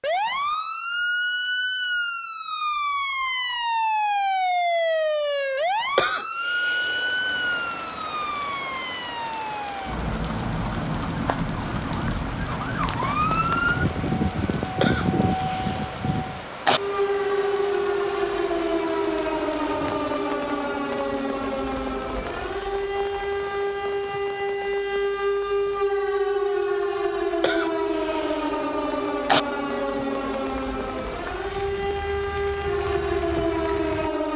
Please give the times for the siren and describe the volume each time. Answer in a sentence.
You can hear the siren from 0.0 to 34.3 s, at a steady volume.